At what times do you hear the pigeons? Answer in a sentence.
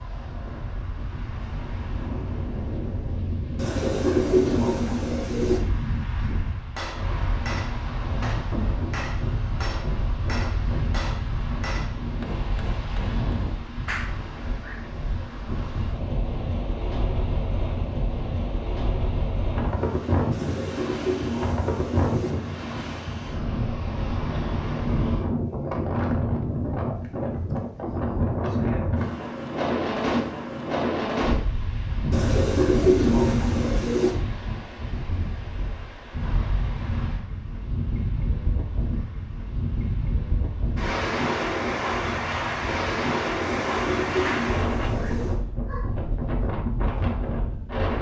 You can hear the pigeons from 3.5 to 5.6 s, from 20.3 to 22.4 s, from 32.1 to 34.1 s and from 43.4 to 45.4 s.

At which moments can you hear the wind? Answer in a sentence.
The wind can be heard from 0.0 to 47.9 s.